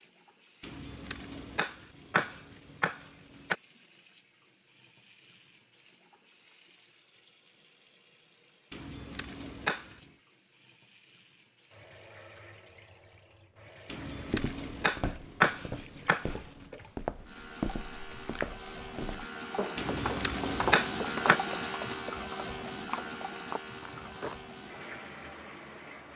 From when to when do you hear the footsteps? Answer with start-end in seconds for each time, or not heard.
14.2-24.4.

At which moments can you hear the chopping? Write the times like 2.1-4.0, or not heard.
0.6-3.5, 8.7-10.0, 13.8-16.5, 19.8-21.4.